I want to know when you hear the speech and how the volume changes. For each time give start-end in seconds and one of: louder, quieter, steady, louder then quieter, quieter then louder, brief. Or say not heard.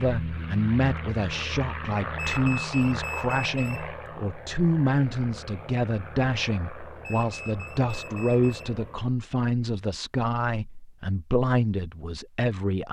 0.0-12.8 steady.